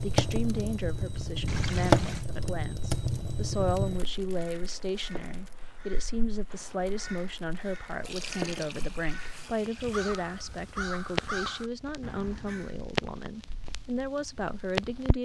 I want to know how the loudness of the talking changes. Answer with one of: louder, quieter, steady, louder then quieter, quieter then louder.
steady.